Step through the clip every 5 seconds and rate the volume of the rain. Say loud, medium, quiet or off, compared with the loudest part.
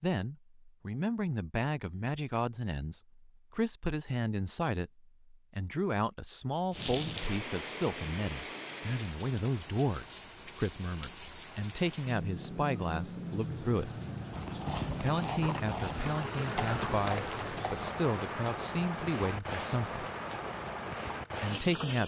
off, loud, loud, loud, loud.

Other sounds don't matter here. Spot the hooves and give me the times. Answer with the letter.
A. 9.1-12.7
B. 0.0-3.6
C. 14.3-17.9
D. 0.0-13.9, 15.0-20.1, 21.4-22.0
C.